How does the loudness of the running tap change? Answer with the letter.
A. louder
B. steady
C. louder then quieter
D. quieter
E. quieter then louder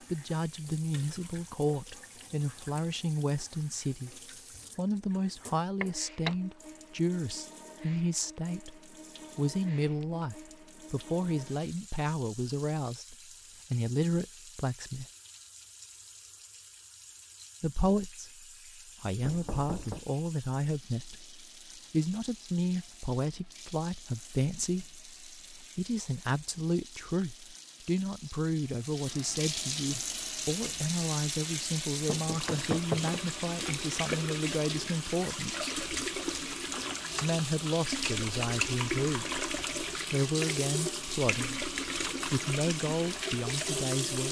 A.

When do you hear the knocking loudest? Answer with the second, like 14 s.
33 s.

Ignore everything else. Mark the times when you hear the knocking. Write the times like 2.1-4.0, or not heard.
5.8-6.4, 19.2-20.1, 32.0-33.2.